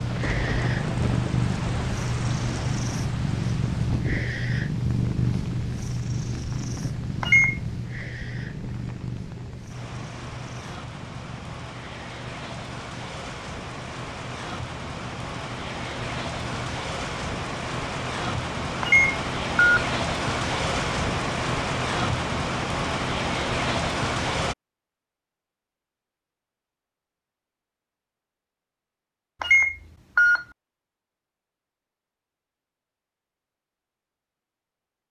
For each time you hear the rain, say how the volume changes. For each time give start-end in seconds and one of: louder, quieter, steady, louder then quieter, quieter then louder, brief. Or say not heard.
0.0-24.6 quieter then louder.